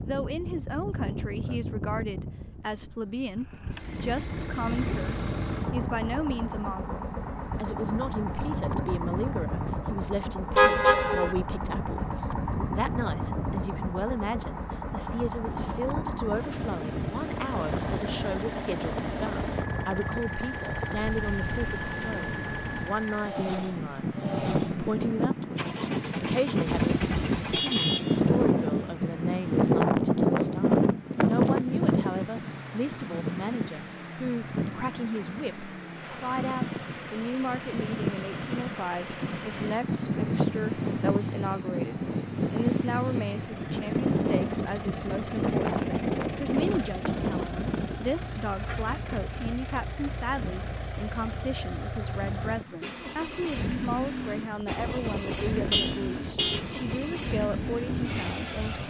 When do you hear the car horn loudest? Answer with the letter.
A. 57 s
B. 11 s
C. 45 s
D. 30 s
B.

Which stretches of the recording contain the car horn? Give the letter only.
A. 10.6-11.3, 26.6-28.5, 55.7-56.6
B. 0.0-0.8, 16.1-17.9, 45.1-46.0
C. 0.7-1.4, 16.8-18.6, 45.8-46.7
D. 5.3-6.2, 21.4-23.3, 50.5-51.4
A.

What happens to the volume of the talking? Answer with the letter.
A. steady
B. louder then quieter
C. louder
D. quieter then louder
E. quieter
A.